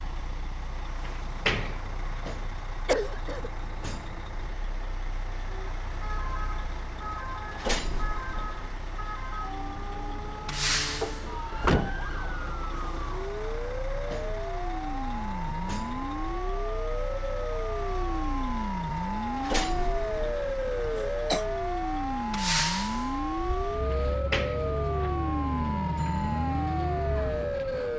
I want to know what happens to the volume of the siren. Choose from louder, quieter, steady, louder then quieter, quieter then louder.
louder.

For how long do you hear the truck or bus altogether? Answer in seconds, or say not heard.
28 s.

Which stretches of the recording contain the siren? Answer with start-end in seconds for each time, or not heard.
5.5-27.9.